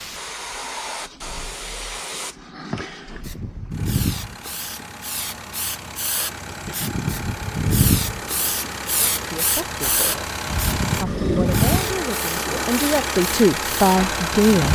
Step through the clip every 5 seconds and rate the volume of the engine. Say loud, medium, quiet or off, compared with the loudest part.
quiet, medium, loud.